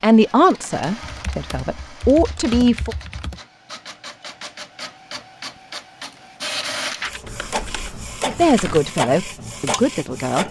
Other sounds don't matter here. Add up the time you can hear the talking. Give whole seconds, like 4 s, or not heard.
5 s.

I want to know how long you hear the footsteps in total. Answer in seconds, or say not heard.
not heard.